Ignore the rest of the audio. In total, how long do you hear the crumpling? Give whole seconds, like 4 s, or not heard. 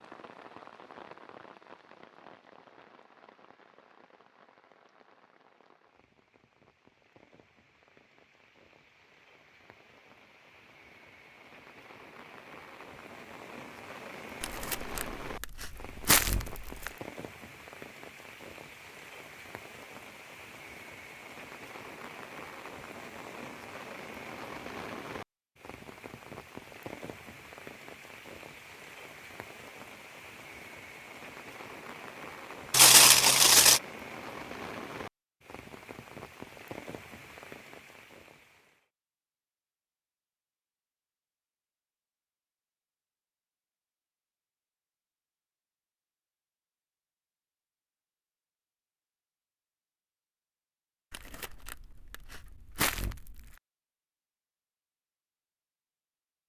6 s.